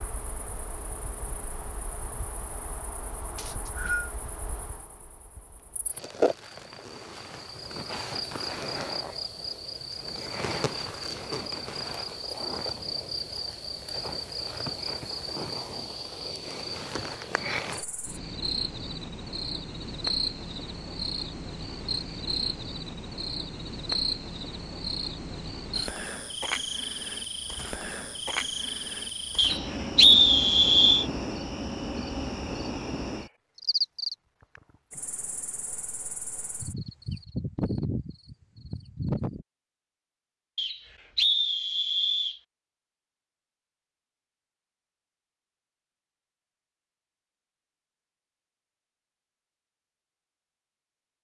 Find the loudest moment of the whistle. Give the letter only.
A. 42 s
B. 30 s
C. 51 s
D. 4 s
B.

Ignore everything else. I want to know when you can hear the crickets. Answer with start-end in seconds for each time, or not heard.
0.0-39.5.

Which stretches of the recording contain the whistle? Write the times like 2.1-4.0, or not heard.
3.4-4.1, 29.4-31.1, 40.5-42.4.